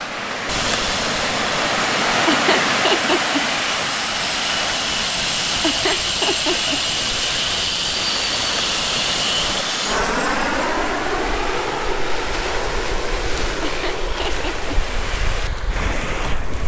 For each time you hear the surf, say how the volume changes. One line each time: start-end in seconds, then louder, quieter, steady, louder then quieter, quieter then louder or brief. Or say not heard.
0.0-16.6 quieter.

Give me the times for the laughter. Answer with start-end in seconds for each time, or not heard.
2.2-3.5, 5.6-6.8, 13.6-14.7.